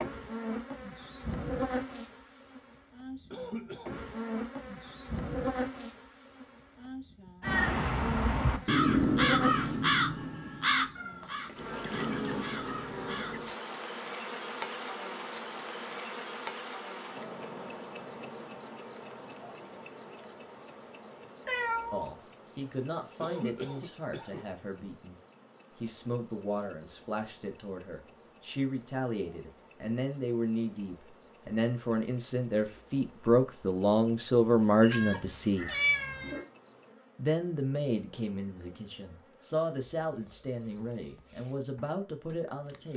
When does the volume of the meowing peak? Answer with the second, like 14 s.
36 s.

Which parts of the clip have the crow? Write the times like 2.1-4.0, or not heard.
7.4-13.5.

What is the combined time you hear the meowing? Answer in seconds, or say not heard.
3 s.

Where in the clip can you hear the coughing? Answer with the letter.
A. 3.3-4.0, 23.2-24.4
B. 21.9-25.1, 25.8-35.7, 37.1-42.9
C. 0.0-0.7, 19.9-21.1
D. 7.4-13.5
A.